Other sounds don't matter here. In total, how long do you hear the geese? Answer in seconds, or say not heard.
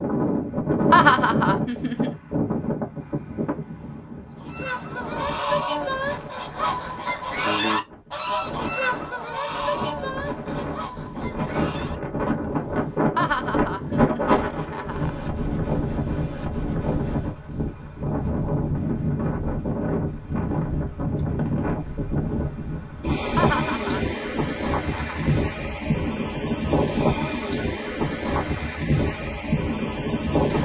8 s.